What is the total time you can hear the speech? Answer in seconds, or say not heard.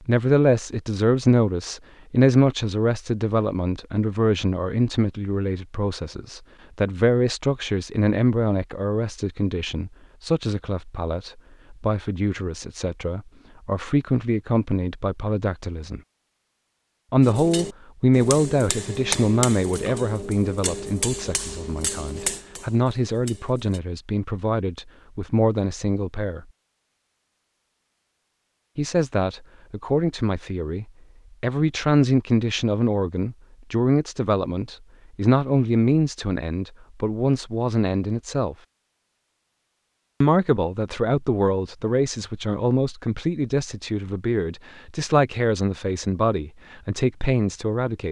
43 s.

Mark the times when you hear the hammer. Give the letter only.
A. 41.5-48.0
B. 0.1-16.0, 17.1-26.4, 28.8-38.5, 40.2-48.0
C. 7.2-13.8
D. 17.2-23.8
D.